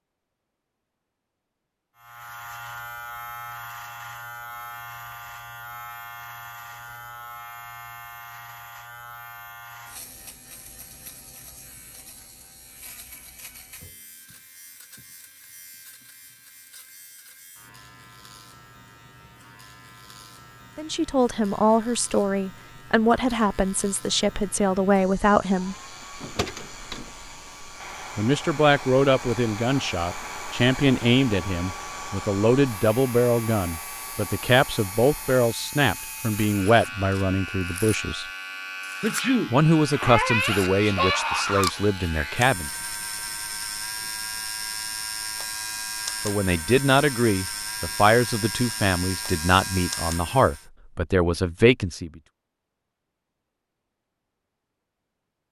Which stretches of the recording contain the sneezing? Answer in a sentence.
You can hear the sneezing from 39.0 to 41.7 s.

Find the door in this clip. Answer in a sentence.
You can hear the door from 26.2 to 27.1 s.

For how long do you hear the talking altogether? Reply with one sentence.
The talking can be heard for 24 seconds in total.